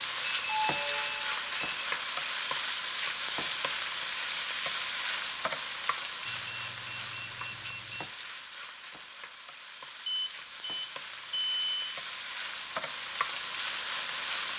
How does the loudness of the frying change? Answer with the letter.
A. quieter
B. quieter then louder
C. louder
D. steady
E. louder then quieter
B.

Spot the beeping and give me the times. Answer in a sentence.
The beeping can be heard from 0.2 to 1.6 s, from 6.2 to 8.1 s and from 10.1 to 11.9 s.